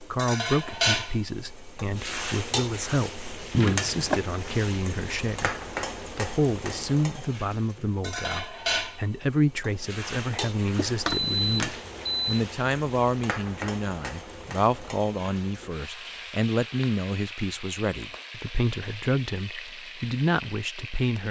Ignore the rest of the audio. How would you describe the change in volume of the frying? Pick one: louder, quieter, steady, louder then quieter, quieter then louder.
quieter.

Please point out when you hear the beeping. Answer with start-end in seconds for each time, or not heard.
3.5-4.2, 10.8-12.4.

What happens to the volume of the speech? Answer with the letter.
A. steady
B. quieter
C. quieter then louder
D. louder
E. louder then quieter
A.